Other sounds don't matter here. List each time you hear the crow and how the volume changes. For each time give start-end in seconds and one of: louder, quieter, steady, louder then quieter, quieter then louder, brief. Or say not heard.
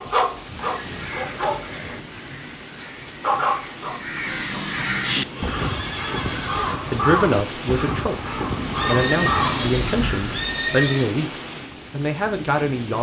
0.3-10.4 louder.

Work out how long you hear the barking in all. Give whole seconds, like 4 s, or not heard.
3 s.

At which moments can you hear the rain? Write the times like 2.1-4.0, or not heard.
0.0-12.9.